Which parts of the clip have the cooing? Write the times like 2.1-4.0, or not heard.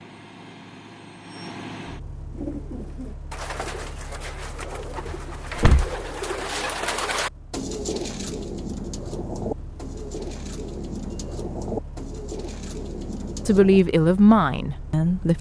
2.3-13.8.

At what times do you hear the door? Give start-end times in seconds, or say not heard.
4.6-6.0.